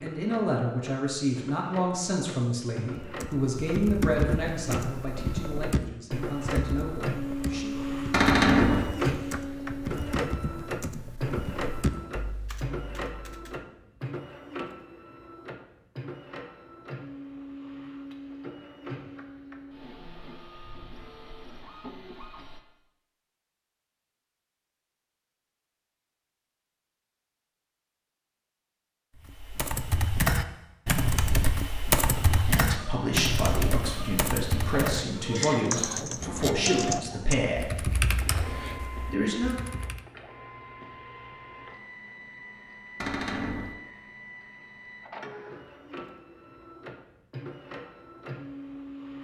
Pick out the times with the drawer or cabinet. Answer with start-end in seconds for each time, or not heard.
8.1-8.9, 43.0-43.8.